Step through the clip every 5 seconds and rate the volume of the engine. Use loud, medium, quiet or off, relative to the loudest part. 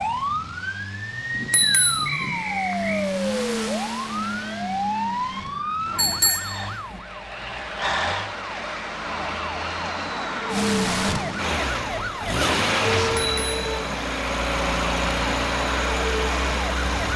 medium, quiet, loud, loud.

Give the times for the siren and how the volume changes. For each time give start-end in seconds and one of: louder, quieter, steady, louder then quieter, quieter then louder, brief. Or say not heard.
0.0-17.1 steady.